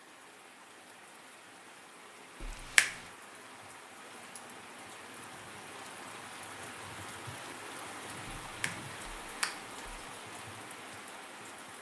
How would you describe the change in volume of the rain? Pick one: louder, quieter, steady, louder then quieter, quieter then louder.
louder.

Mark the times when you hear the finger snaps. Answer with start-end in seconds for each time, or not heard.
2.4-3.0, 8.4-10.0.